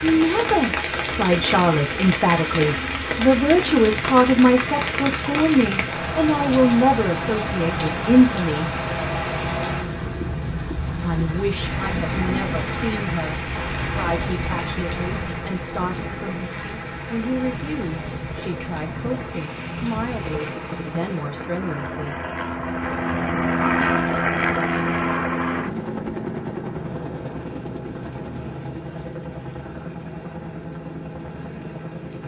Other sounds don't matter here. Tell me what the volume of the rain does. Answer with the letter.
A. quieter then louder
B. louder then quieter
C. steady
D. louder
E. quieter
E.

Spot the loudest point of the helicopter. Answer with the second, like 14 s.
24 s.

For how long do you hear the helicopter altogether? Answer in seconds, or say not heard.
32 s.